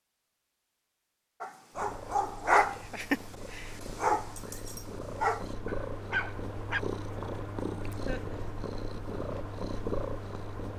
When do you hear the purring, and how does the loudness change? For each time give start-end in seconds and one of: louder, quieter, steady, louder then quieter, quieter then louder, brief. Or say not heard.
1.7-10.7 louder.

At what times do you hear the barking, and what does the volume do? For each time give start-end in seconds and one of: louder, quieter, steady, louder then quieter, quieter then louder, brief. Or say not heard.
1.4-6.8 quieter.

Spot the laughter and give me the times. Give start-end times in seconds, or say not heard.
8.1-8.5.